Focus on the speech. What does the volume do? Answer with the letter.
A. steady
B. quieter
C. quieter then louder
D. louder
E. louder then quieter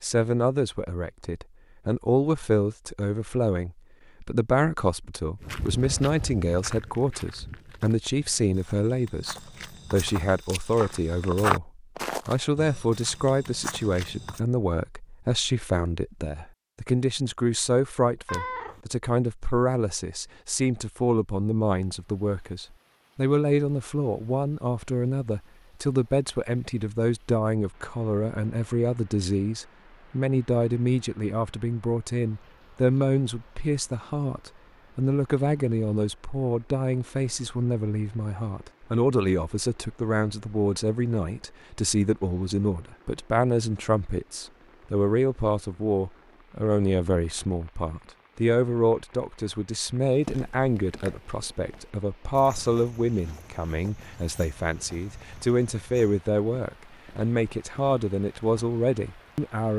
A.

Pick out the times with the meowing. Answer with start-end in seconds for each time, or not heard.
18.2-18.8.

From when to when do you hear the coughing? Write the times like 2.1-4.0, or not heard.
not heard.